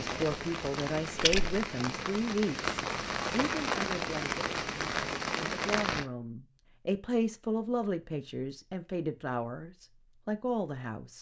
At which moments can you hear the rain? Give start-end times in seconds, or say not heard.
0.0-6.0.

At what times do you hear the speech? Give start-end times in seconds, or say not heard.
0.0-11.1.